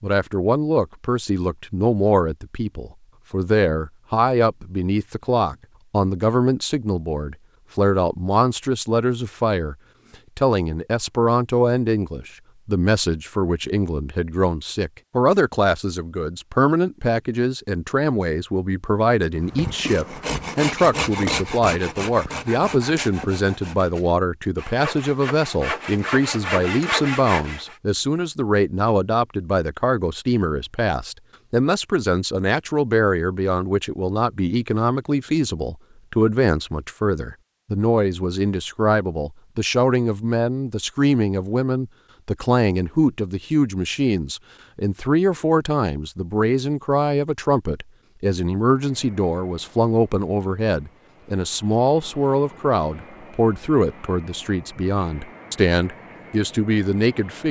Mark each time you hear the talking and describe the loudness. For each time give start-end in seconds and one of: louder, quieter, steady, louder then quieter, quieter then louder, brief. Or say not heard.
0.0-9.8 steady
10.3-57.4 steady.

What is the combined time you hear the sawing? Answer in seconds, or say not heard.
8 s.